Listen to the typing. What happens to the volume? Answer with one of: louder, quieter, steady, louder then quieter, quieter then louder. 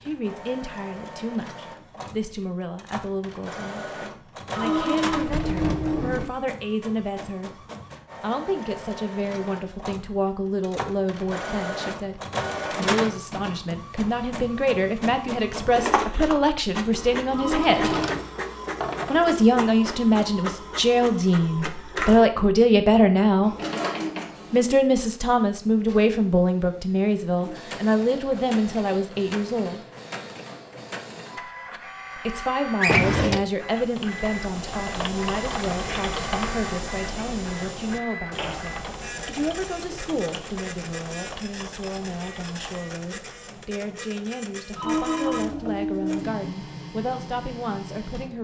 quieter.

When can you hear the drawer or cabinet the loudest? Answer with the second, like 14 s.
33 s.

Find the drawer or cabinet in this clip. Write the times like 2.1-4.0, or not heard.
5.2-6.3, 17.6-19.3, 32.8-33.4.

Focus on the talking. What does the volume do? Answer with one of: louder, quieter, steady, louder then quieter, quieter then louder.
louder then quieter.